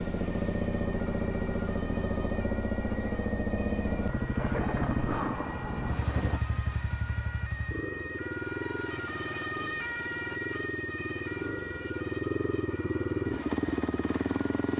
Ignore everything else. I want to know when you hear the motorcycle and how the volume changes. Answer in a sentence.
The motorcycle can be heard from 0.0 to 14.7 s, getting quieter then louder.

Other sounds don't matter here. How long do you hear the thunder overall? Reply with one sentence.
The thunder can be heard for 2 seconds in total.